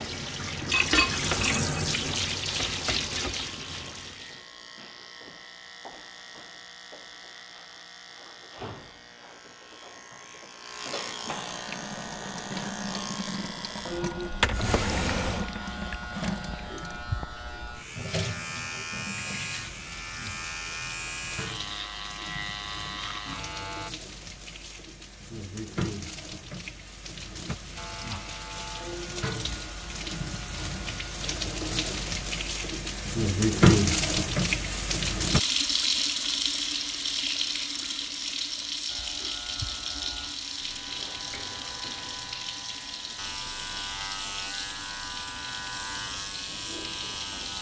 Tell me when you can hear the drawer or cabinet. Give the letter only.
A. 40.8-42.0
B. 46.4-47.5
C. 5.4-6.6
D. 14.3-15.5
D.